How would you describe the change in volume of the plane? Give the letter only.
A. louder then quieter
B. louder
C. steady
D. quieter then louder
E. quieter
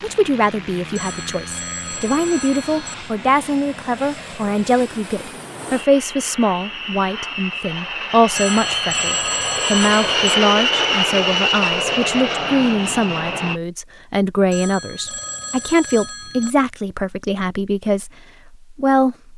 B.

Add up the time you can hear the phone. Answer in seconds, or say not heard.
6 s.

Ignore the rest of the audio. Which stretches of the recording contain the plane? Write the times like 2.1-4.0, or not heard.
0.0-13.6.